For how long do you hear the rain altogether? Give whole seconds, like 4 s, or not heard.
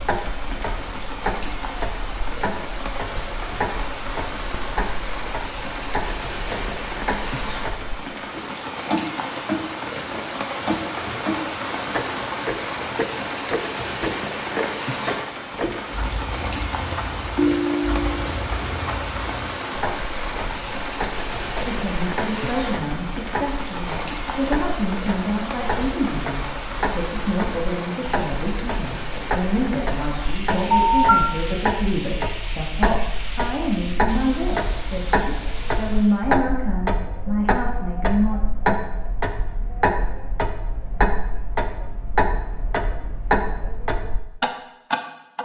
36 s.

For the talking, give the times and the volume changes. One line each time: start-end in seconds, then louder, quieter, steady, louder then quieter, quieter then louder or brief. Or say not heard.
21.6-38.4 steady.